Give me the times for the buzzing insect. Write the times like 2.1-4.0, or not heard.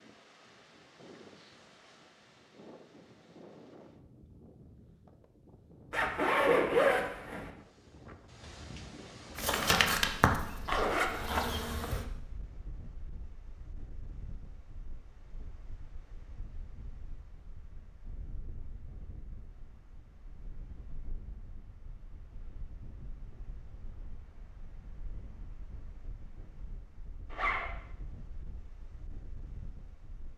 9.3-12.1.